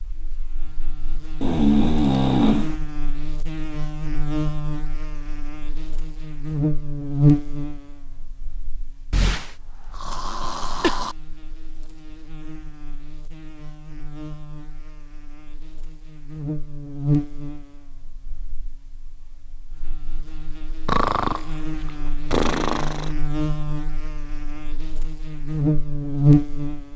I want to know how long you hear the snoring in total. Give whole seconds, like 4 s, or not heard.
6 s.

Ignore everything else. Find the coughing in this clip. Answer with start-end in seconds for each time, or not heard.
10.4-11.0.